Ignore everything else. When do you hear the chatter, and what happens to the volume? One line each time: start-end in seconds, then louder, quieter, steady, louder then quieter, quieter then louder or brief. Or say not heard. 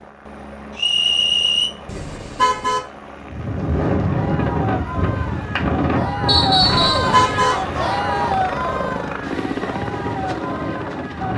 4.0-11.3 louder then quieter.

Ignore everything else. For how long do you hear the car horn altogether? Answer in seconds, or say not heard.
2 s.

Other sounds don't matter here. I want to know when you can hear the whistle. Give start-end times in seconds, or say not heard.
0.8-1.7, 6.2-7.1.